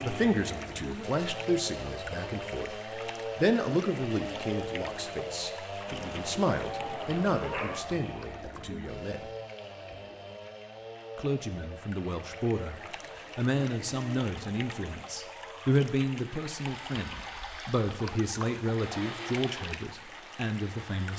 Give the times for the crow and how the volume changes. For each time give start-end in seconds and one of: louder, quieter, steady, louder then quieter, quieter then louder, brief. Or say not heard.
not heard.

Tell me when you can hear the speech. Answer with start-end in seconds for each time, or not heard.
0.0-2.8, 3.4-9.2, 11.2-21.1.